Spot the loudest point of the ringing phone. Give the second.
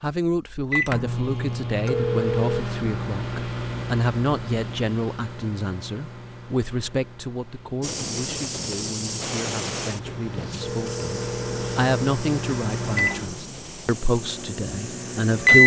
2 s.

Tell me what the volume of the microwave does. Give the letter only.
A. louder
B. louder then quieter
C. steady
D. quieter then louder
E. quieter
D.